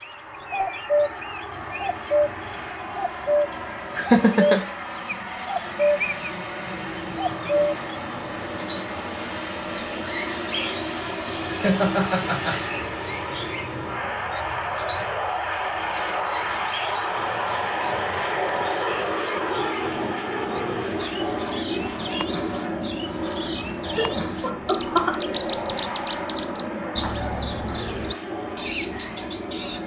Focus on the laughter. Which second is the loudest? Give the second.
4 s.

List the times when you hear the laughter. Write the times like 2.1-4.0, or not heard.
4.0-4.6, 11.4-12.6, 23.9-25.1.